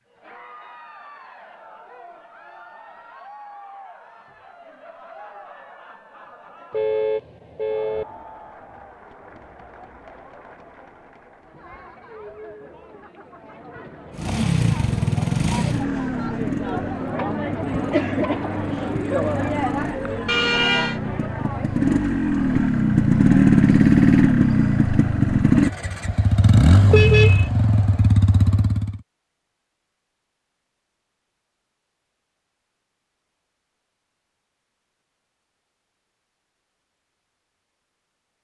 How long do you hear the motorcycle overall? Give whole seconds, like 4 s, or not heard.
15 s.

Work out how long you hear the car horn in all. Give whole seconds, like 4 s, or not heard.
3 s.